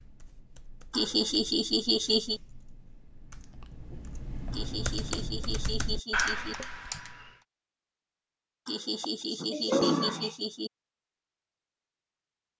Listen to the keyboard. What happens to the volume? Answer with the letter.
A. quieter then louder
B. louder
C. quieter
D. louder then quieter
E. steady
B.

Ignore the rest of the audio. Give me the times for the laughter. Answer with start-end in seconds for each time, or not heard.
0.9-2.4, 4.5-6.5, 8.7-10.7.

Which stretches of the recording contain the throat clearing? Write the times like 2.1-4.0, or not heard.
9.0-10.3.